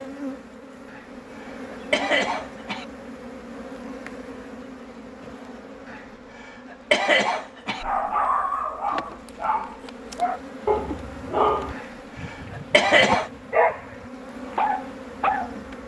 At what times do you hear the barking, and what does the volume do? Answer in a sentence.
You can hear the barking from 7.8 to 15.5 s, at a steady volume.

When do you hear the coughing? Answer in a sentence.
You can hear the coughing from 0.9 to 2.9 s, from 5.9 to 7.8 s and from 11.8 to 13.3 s.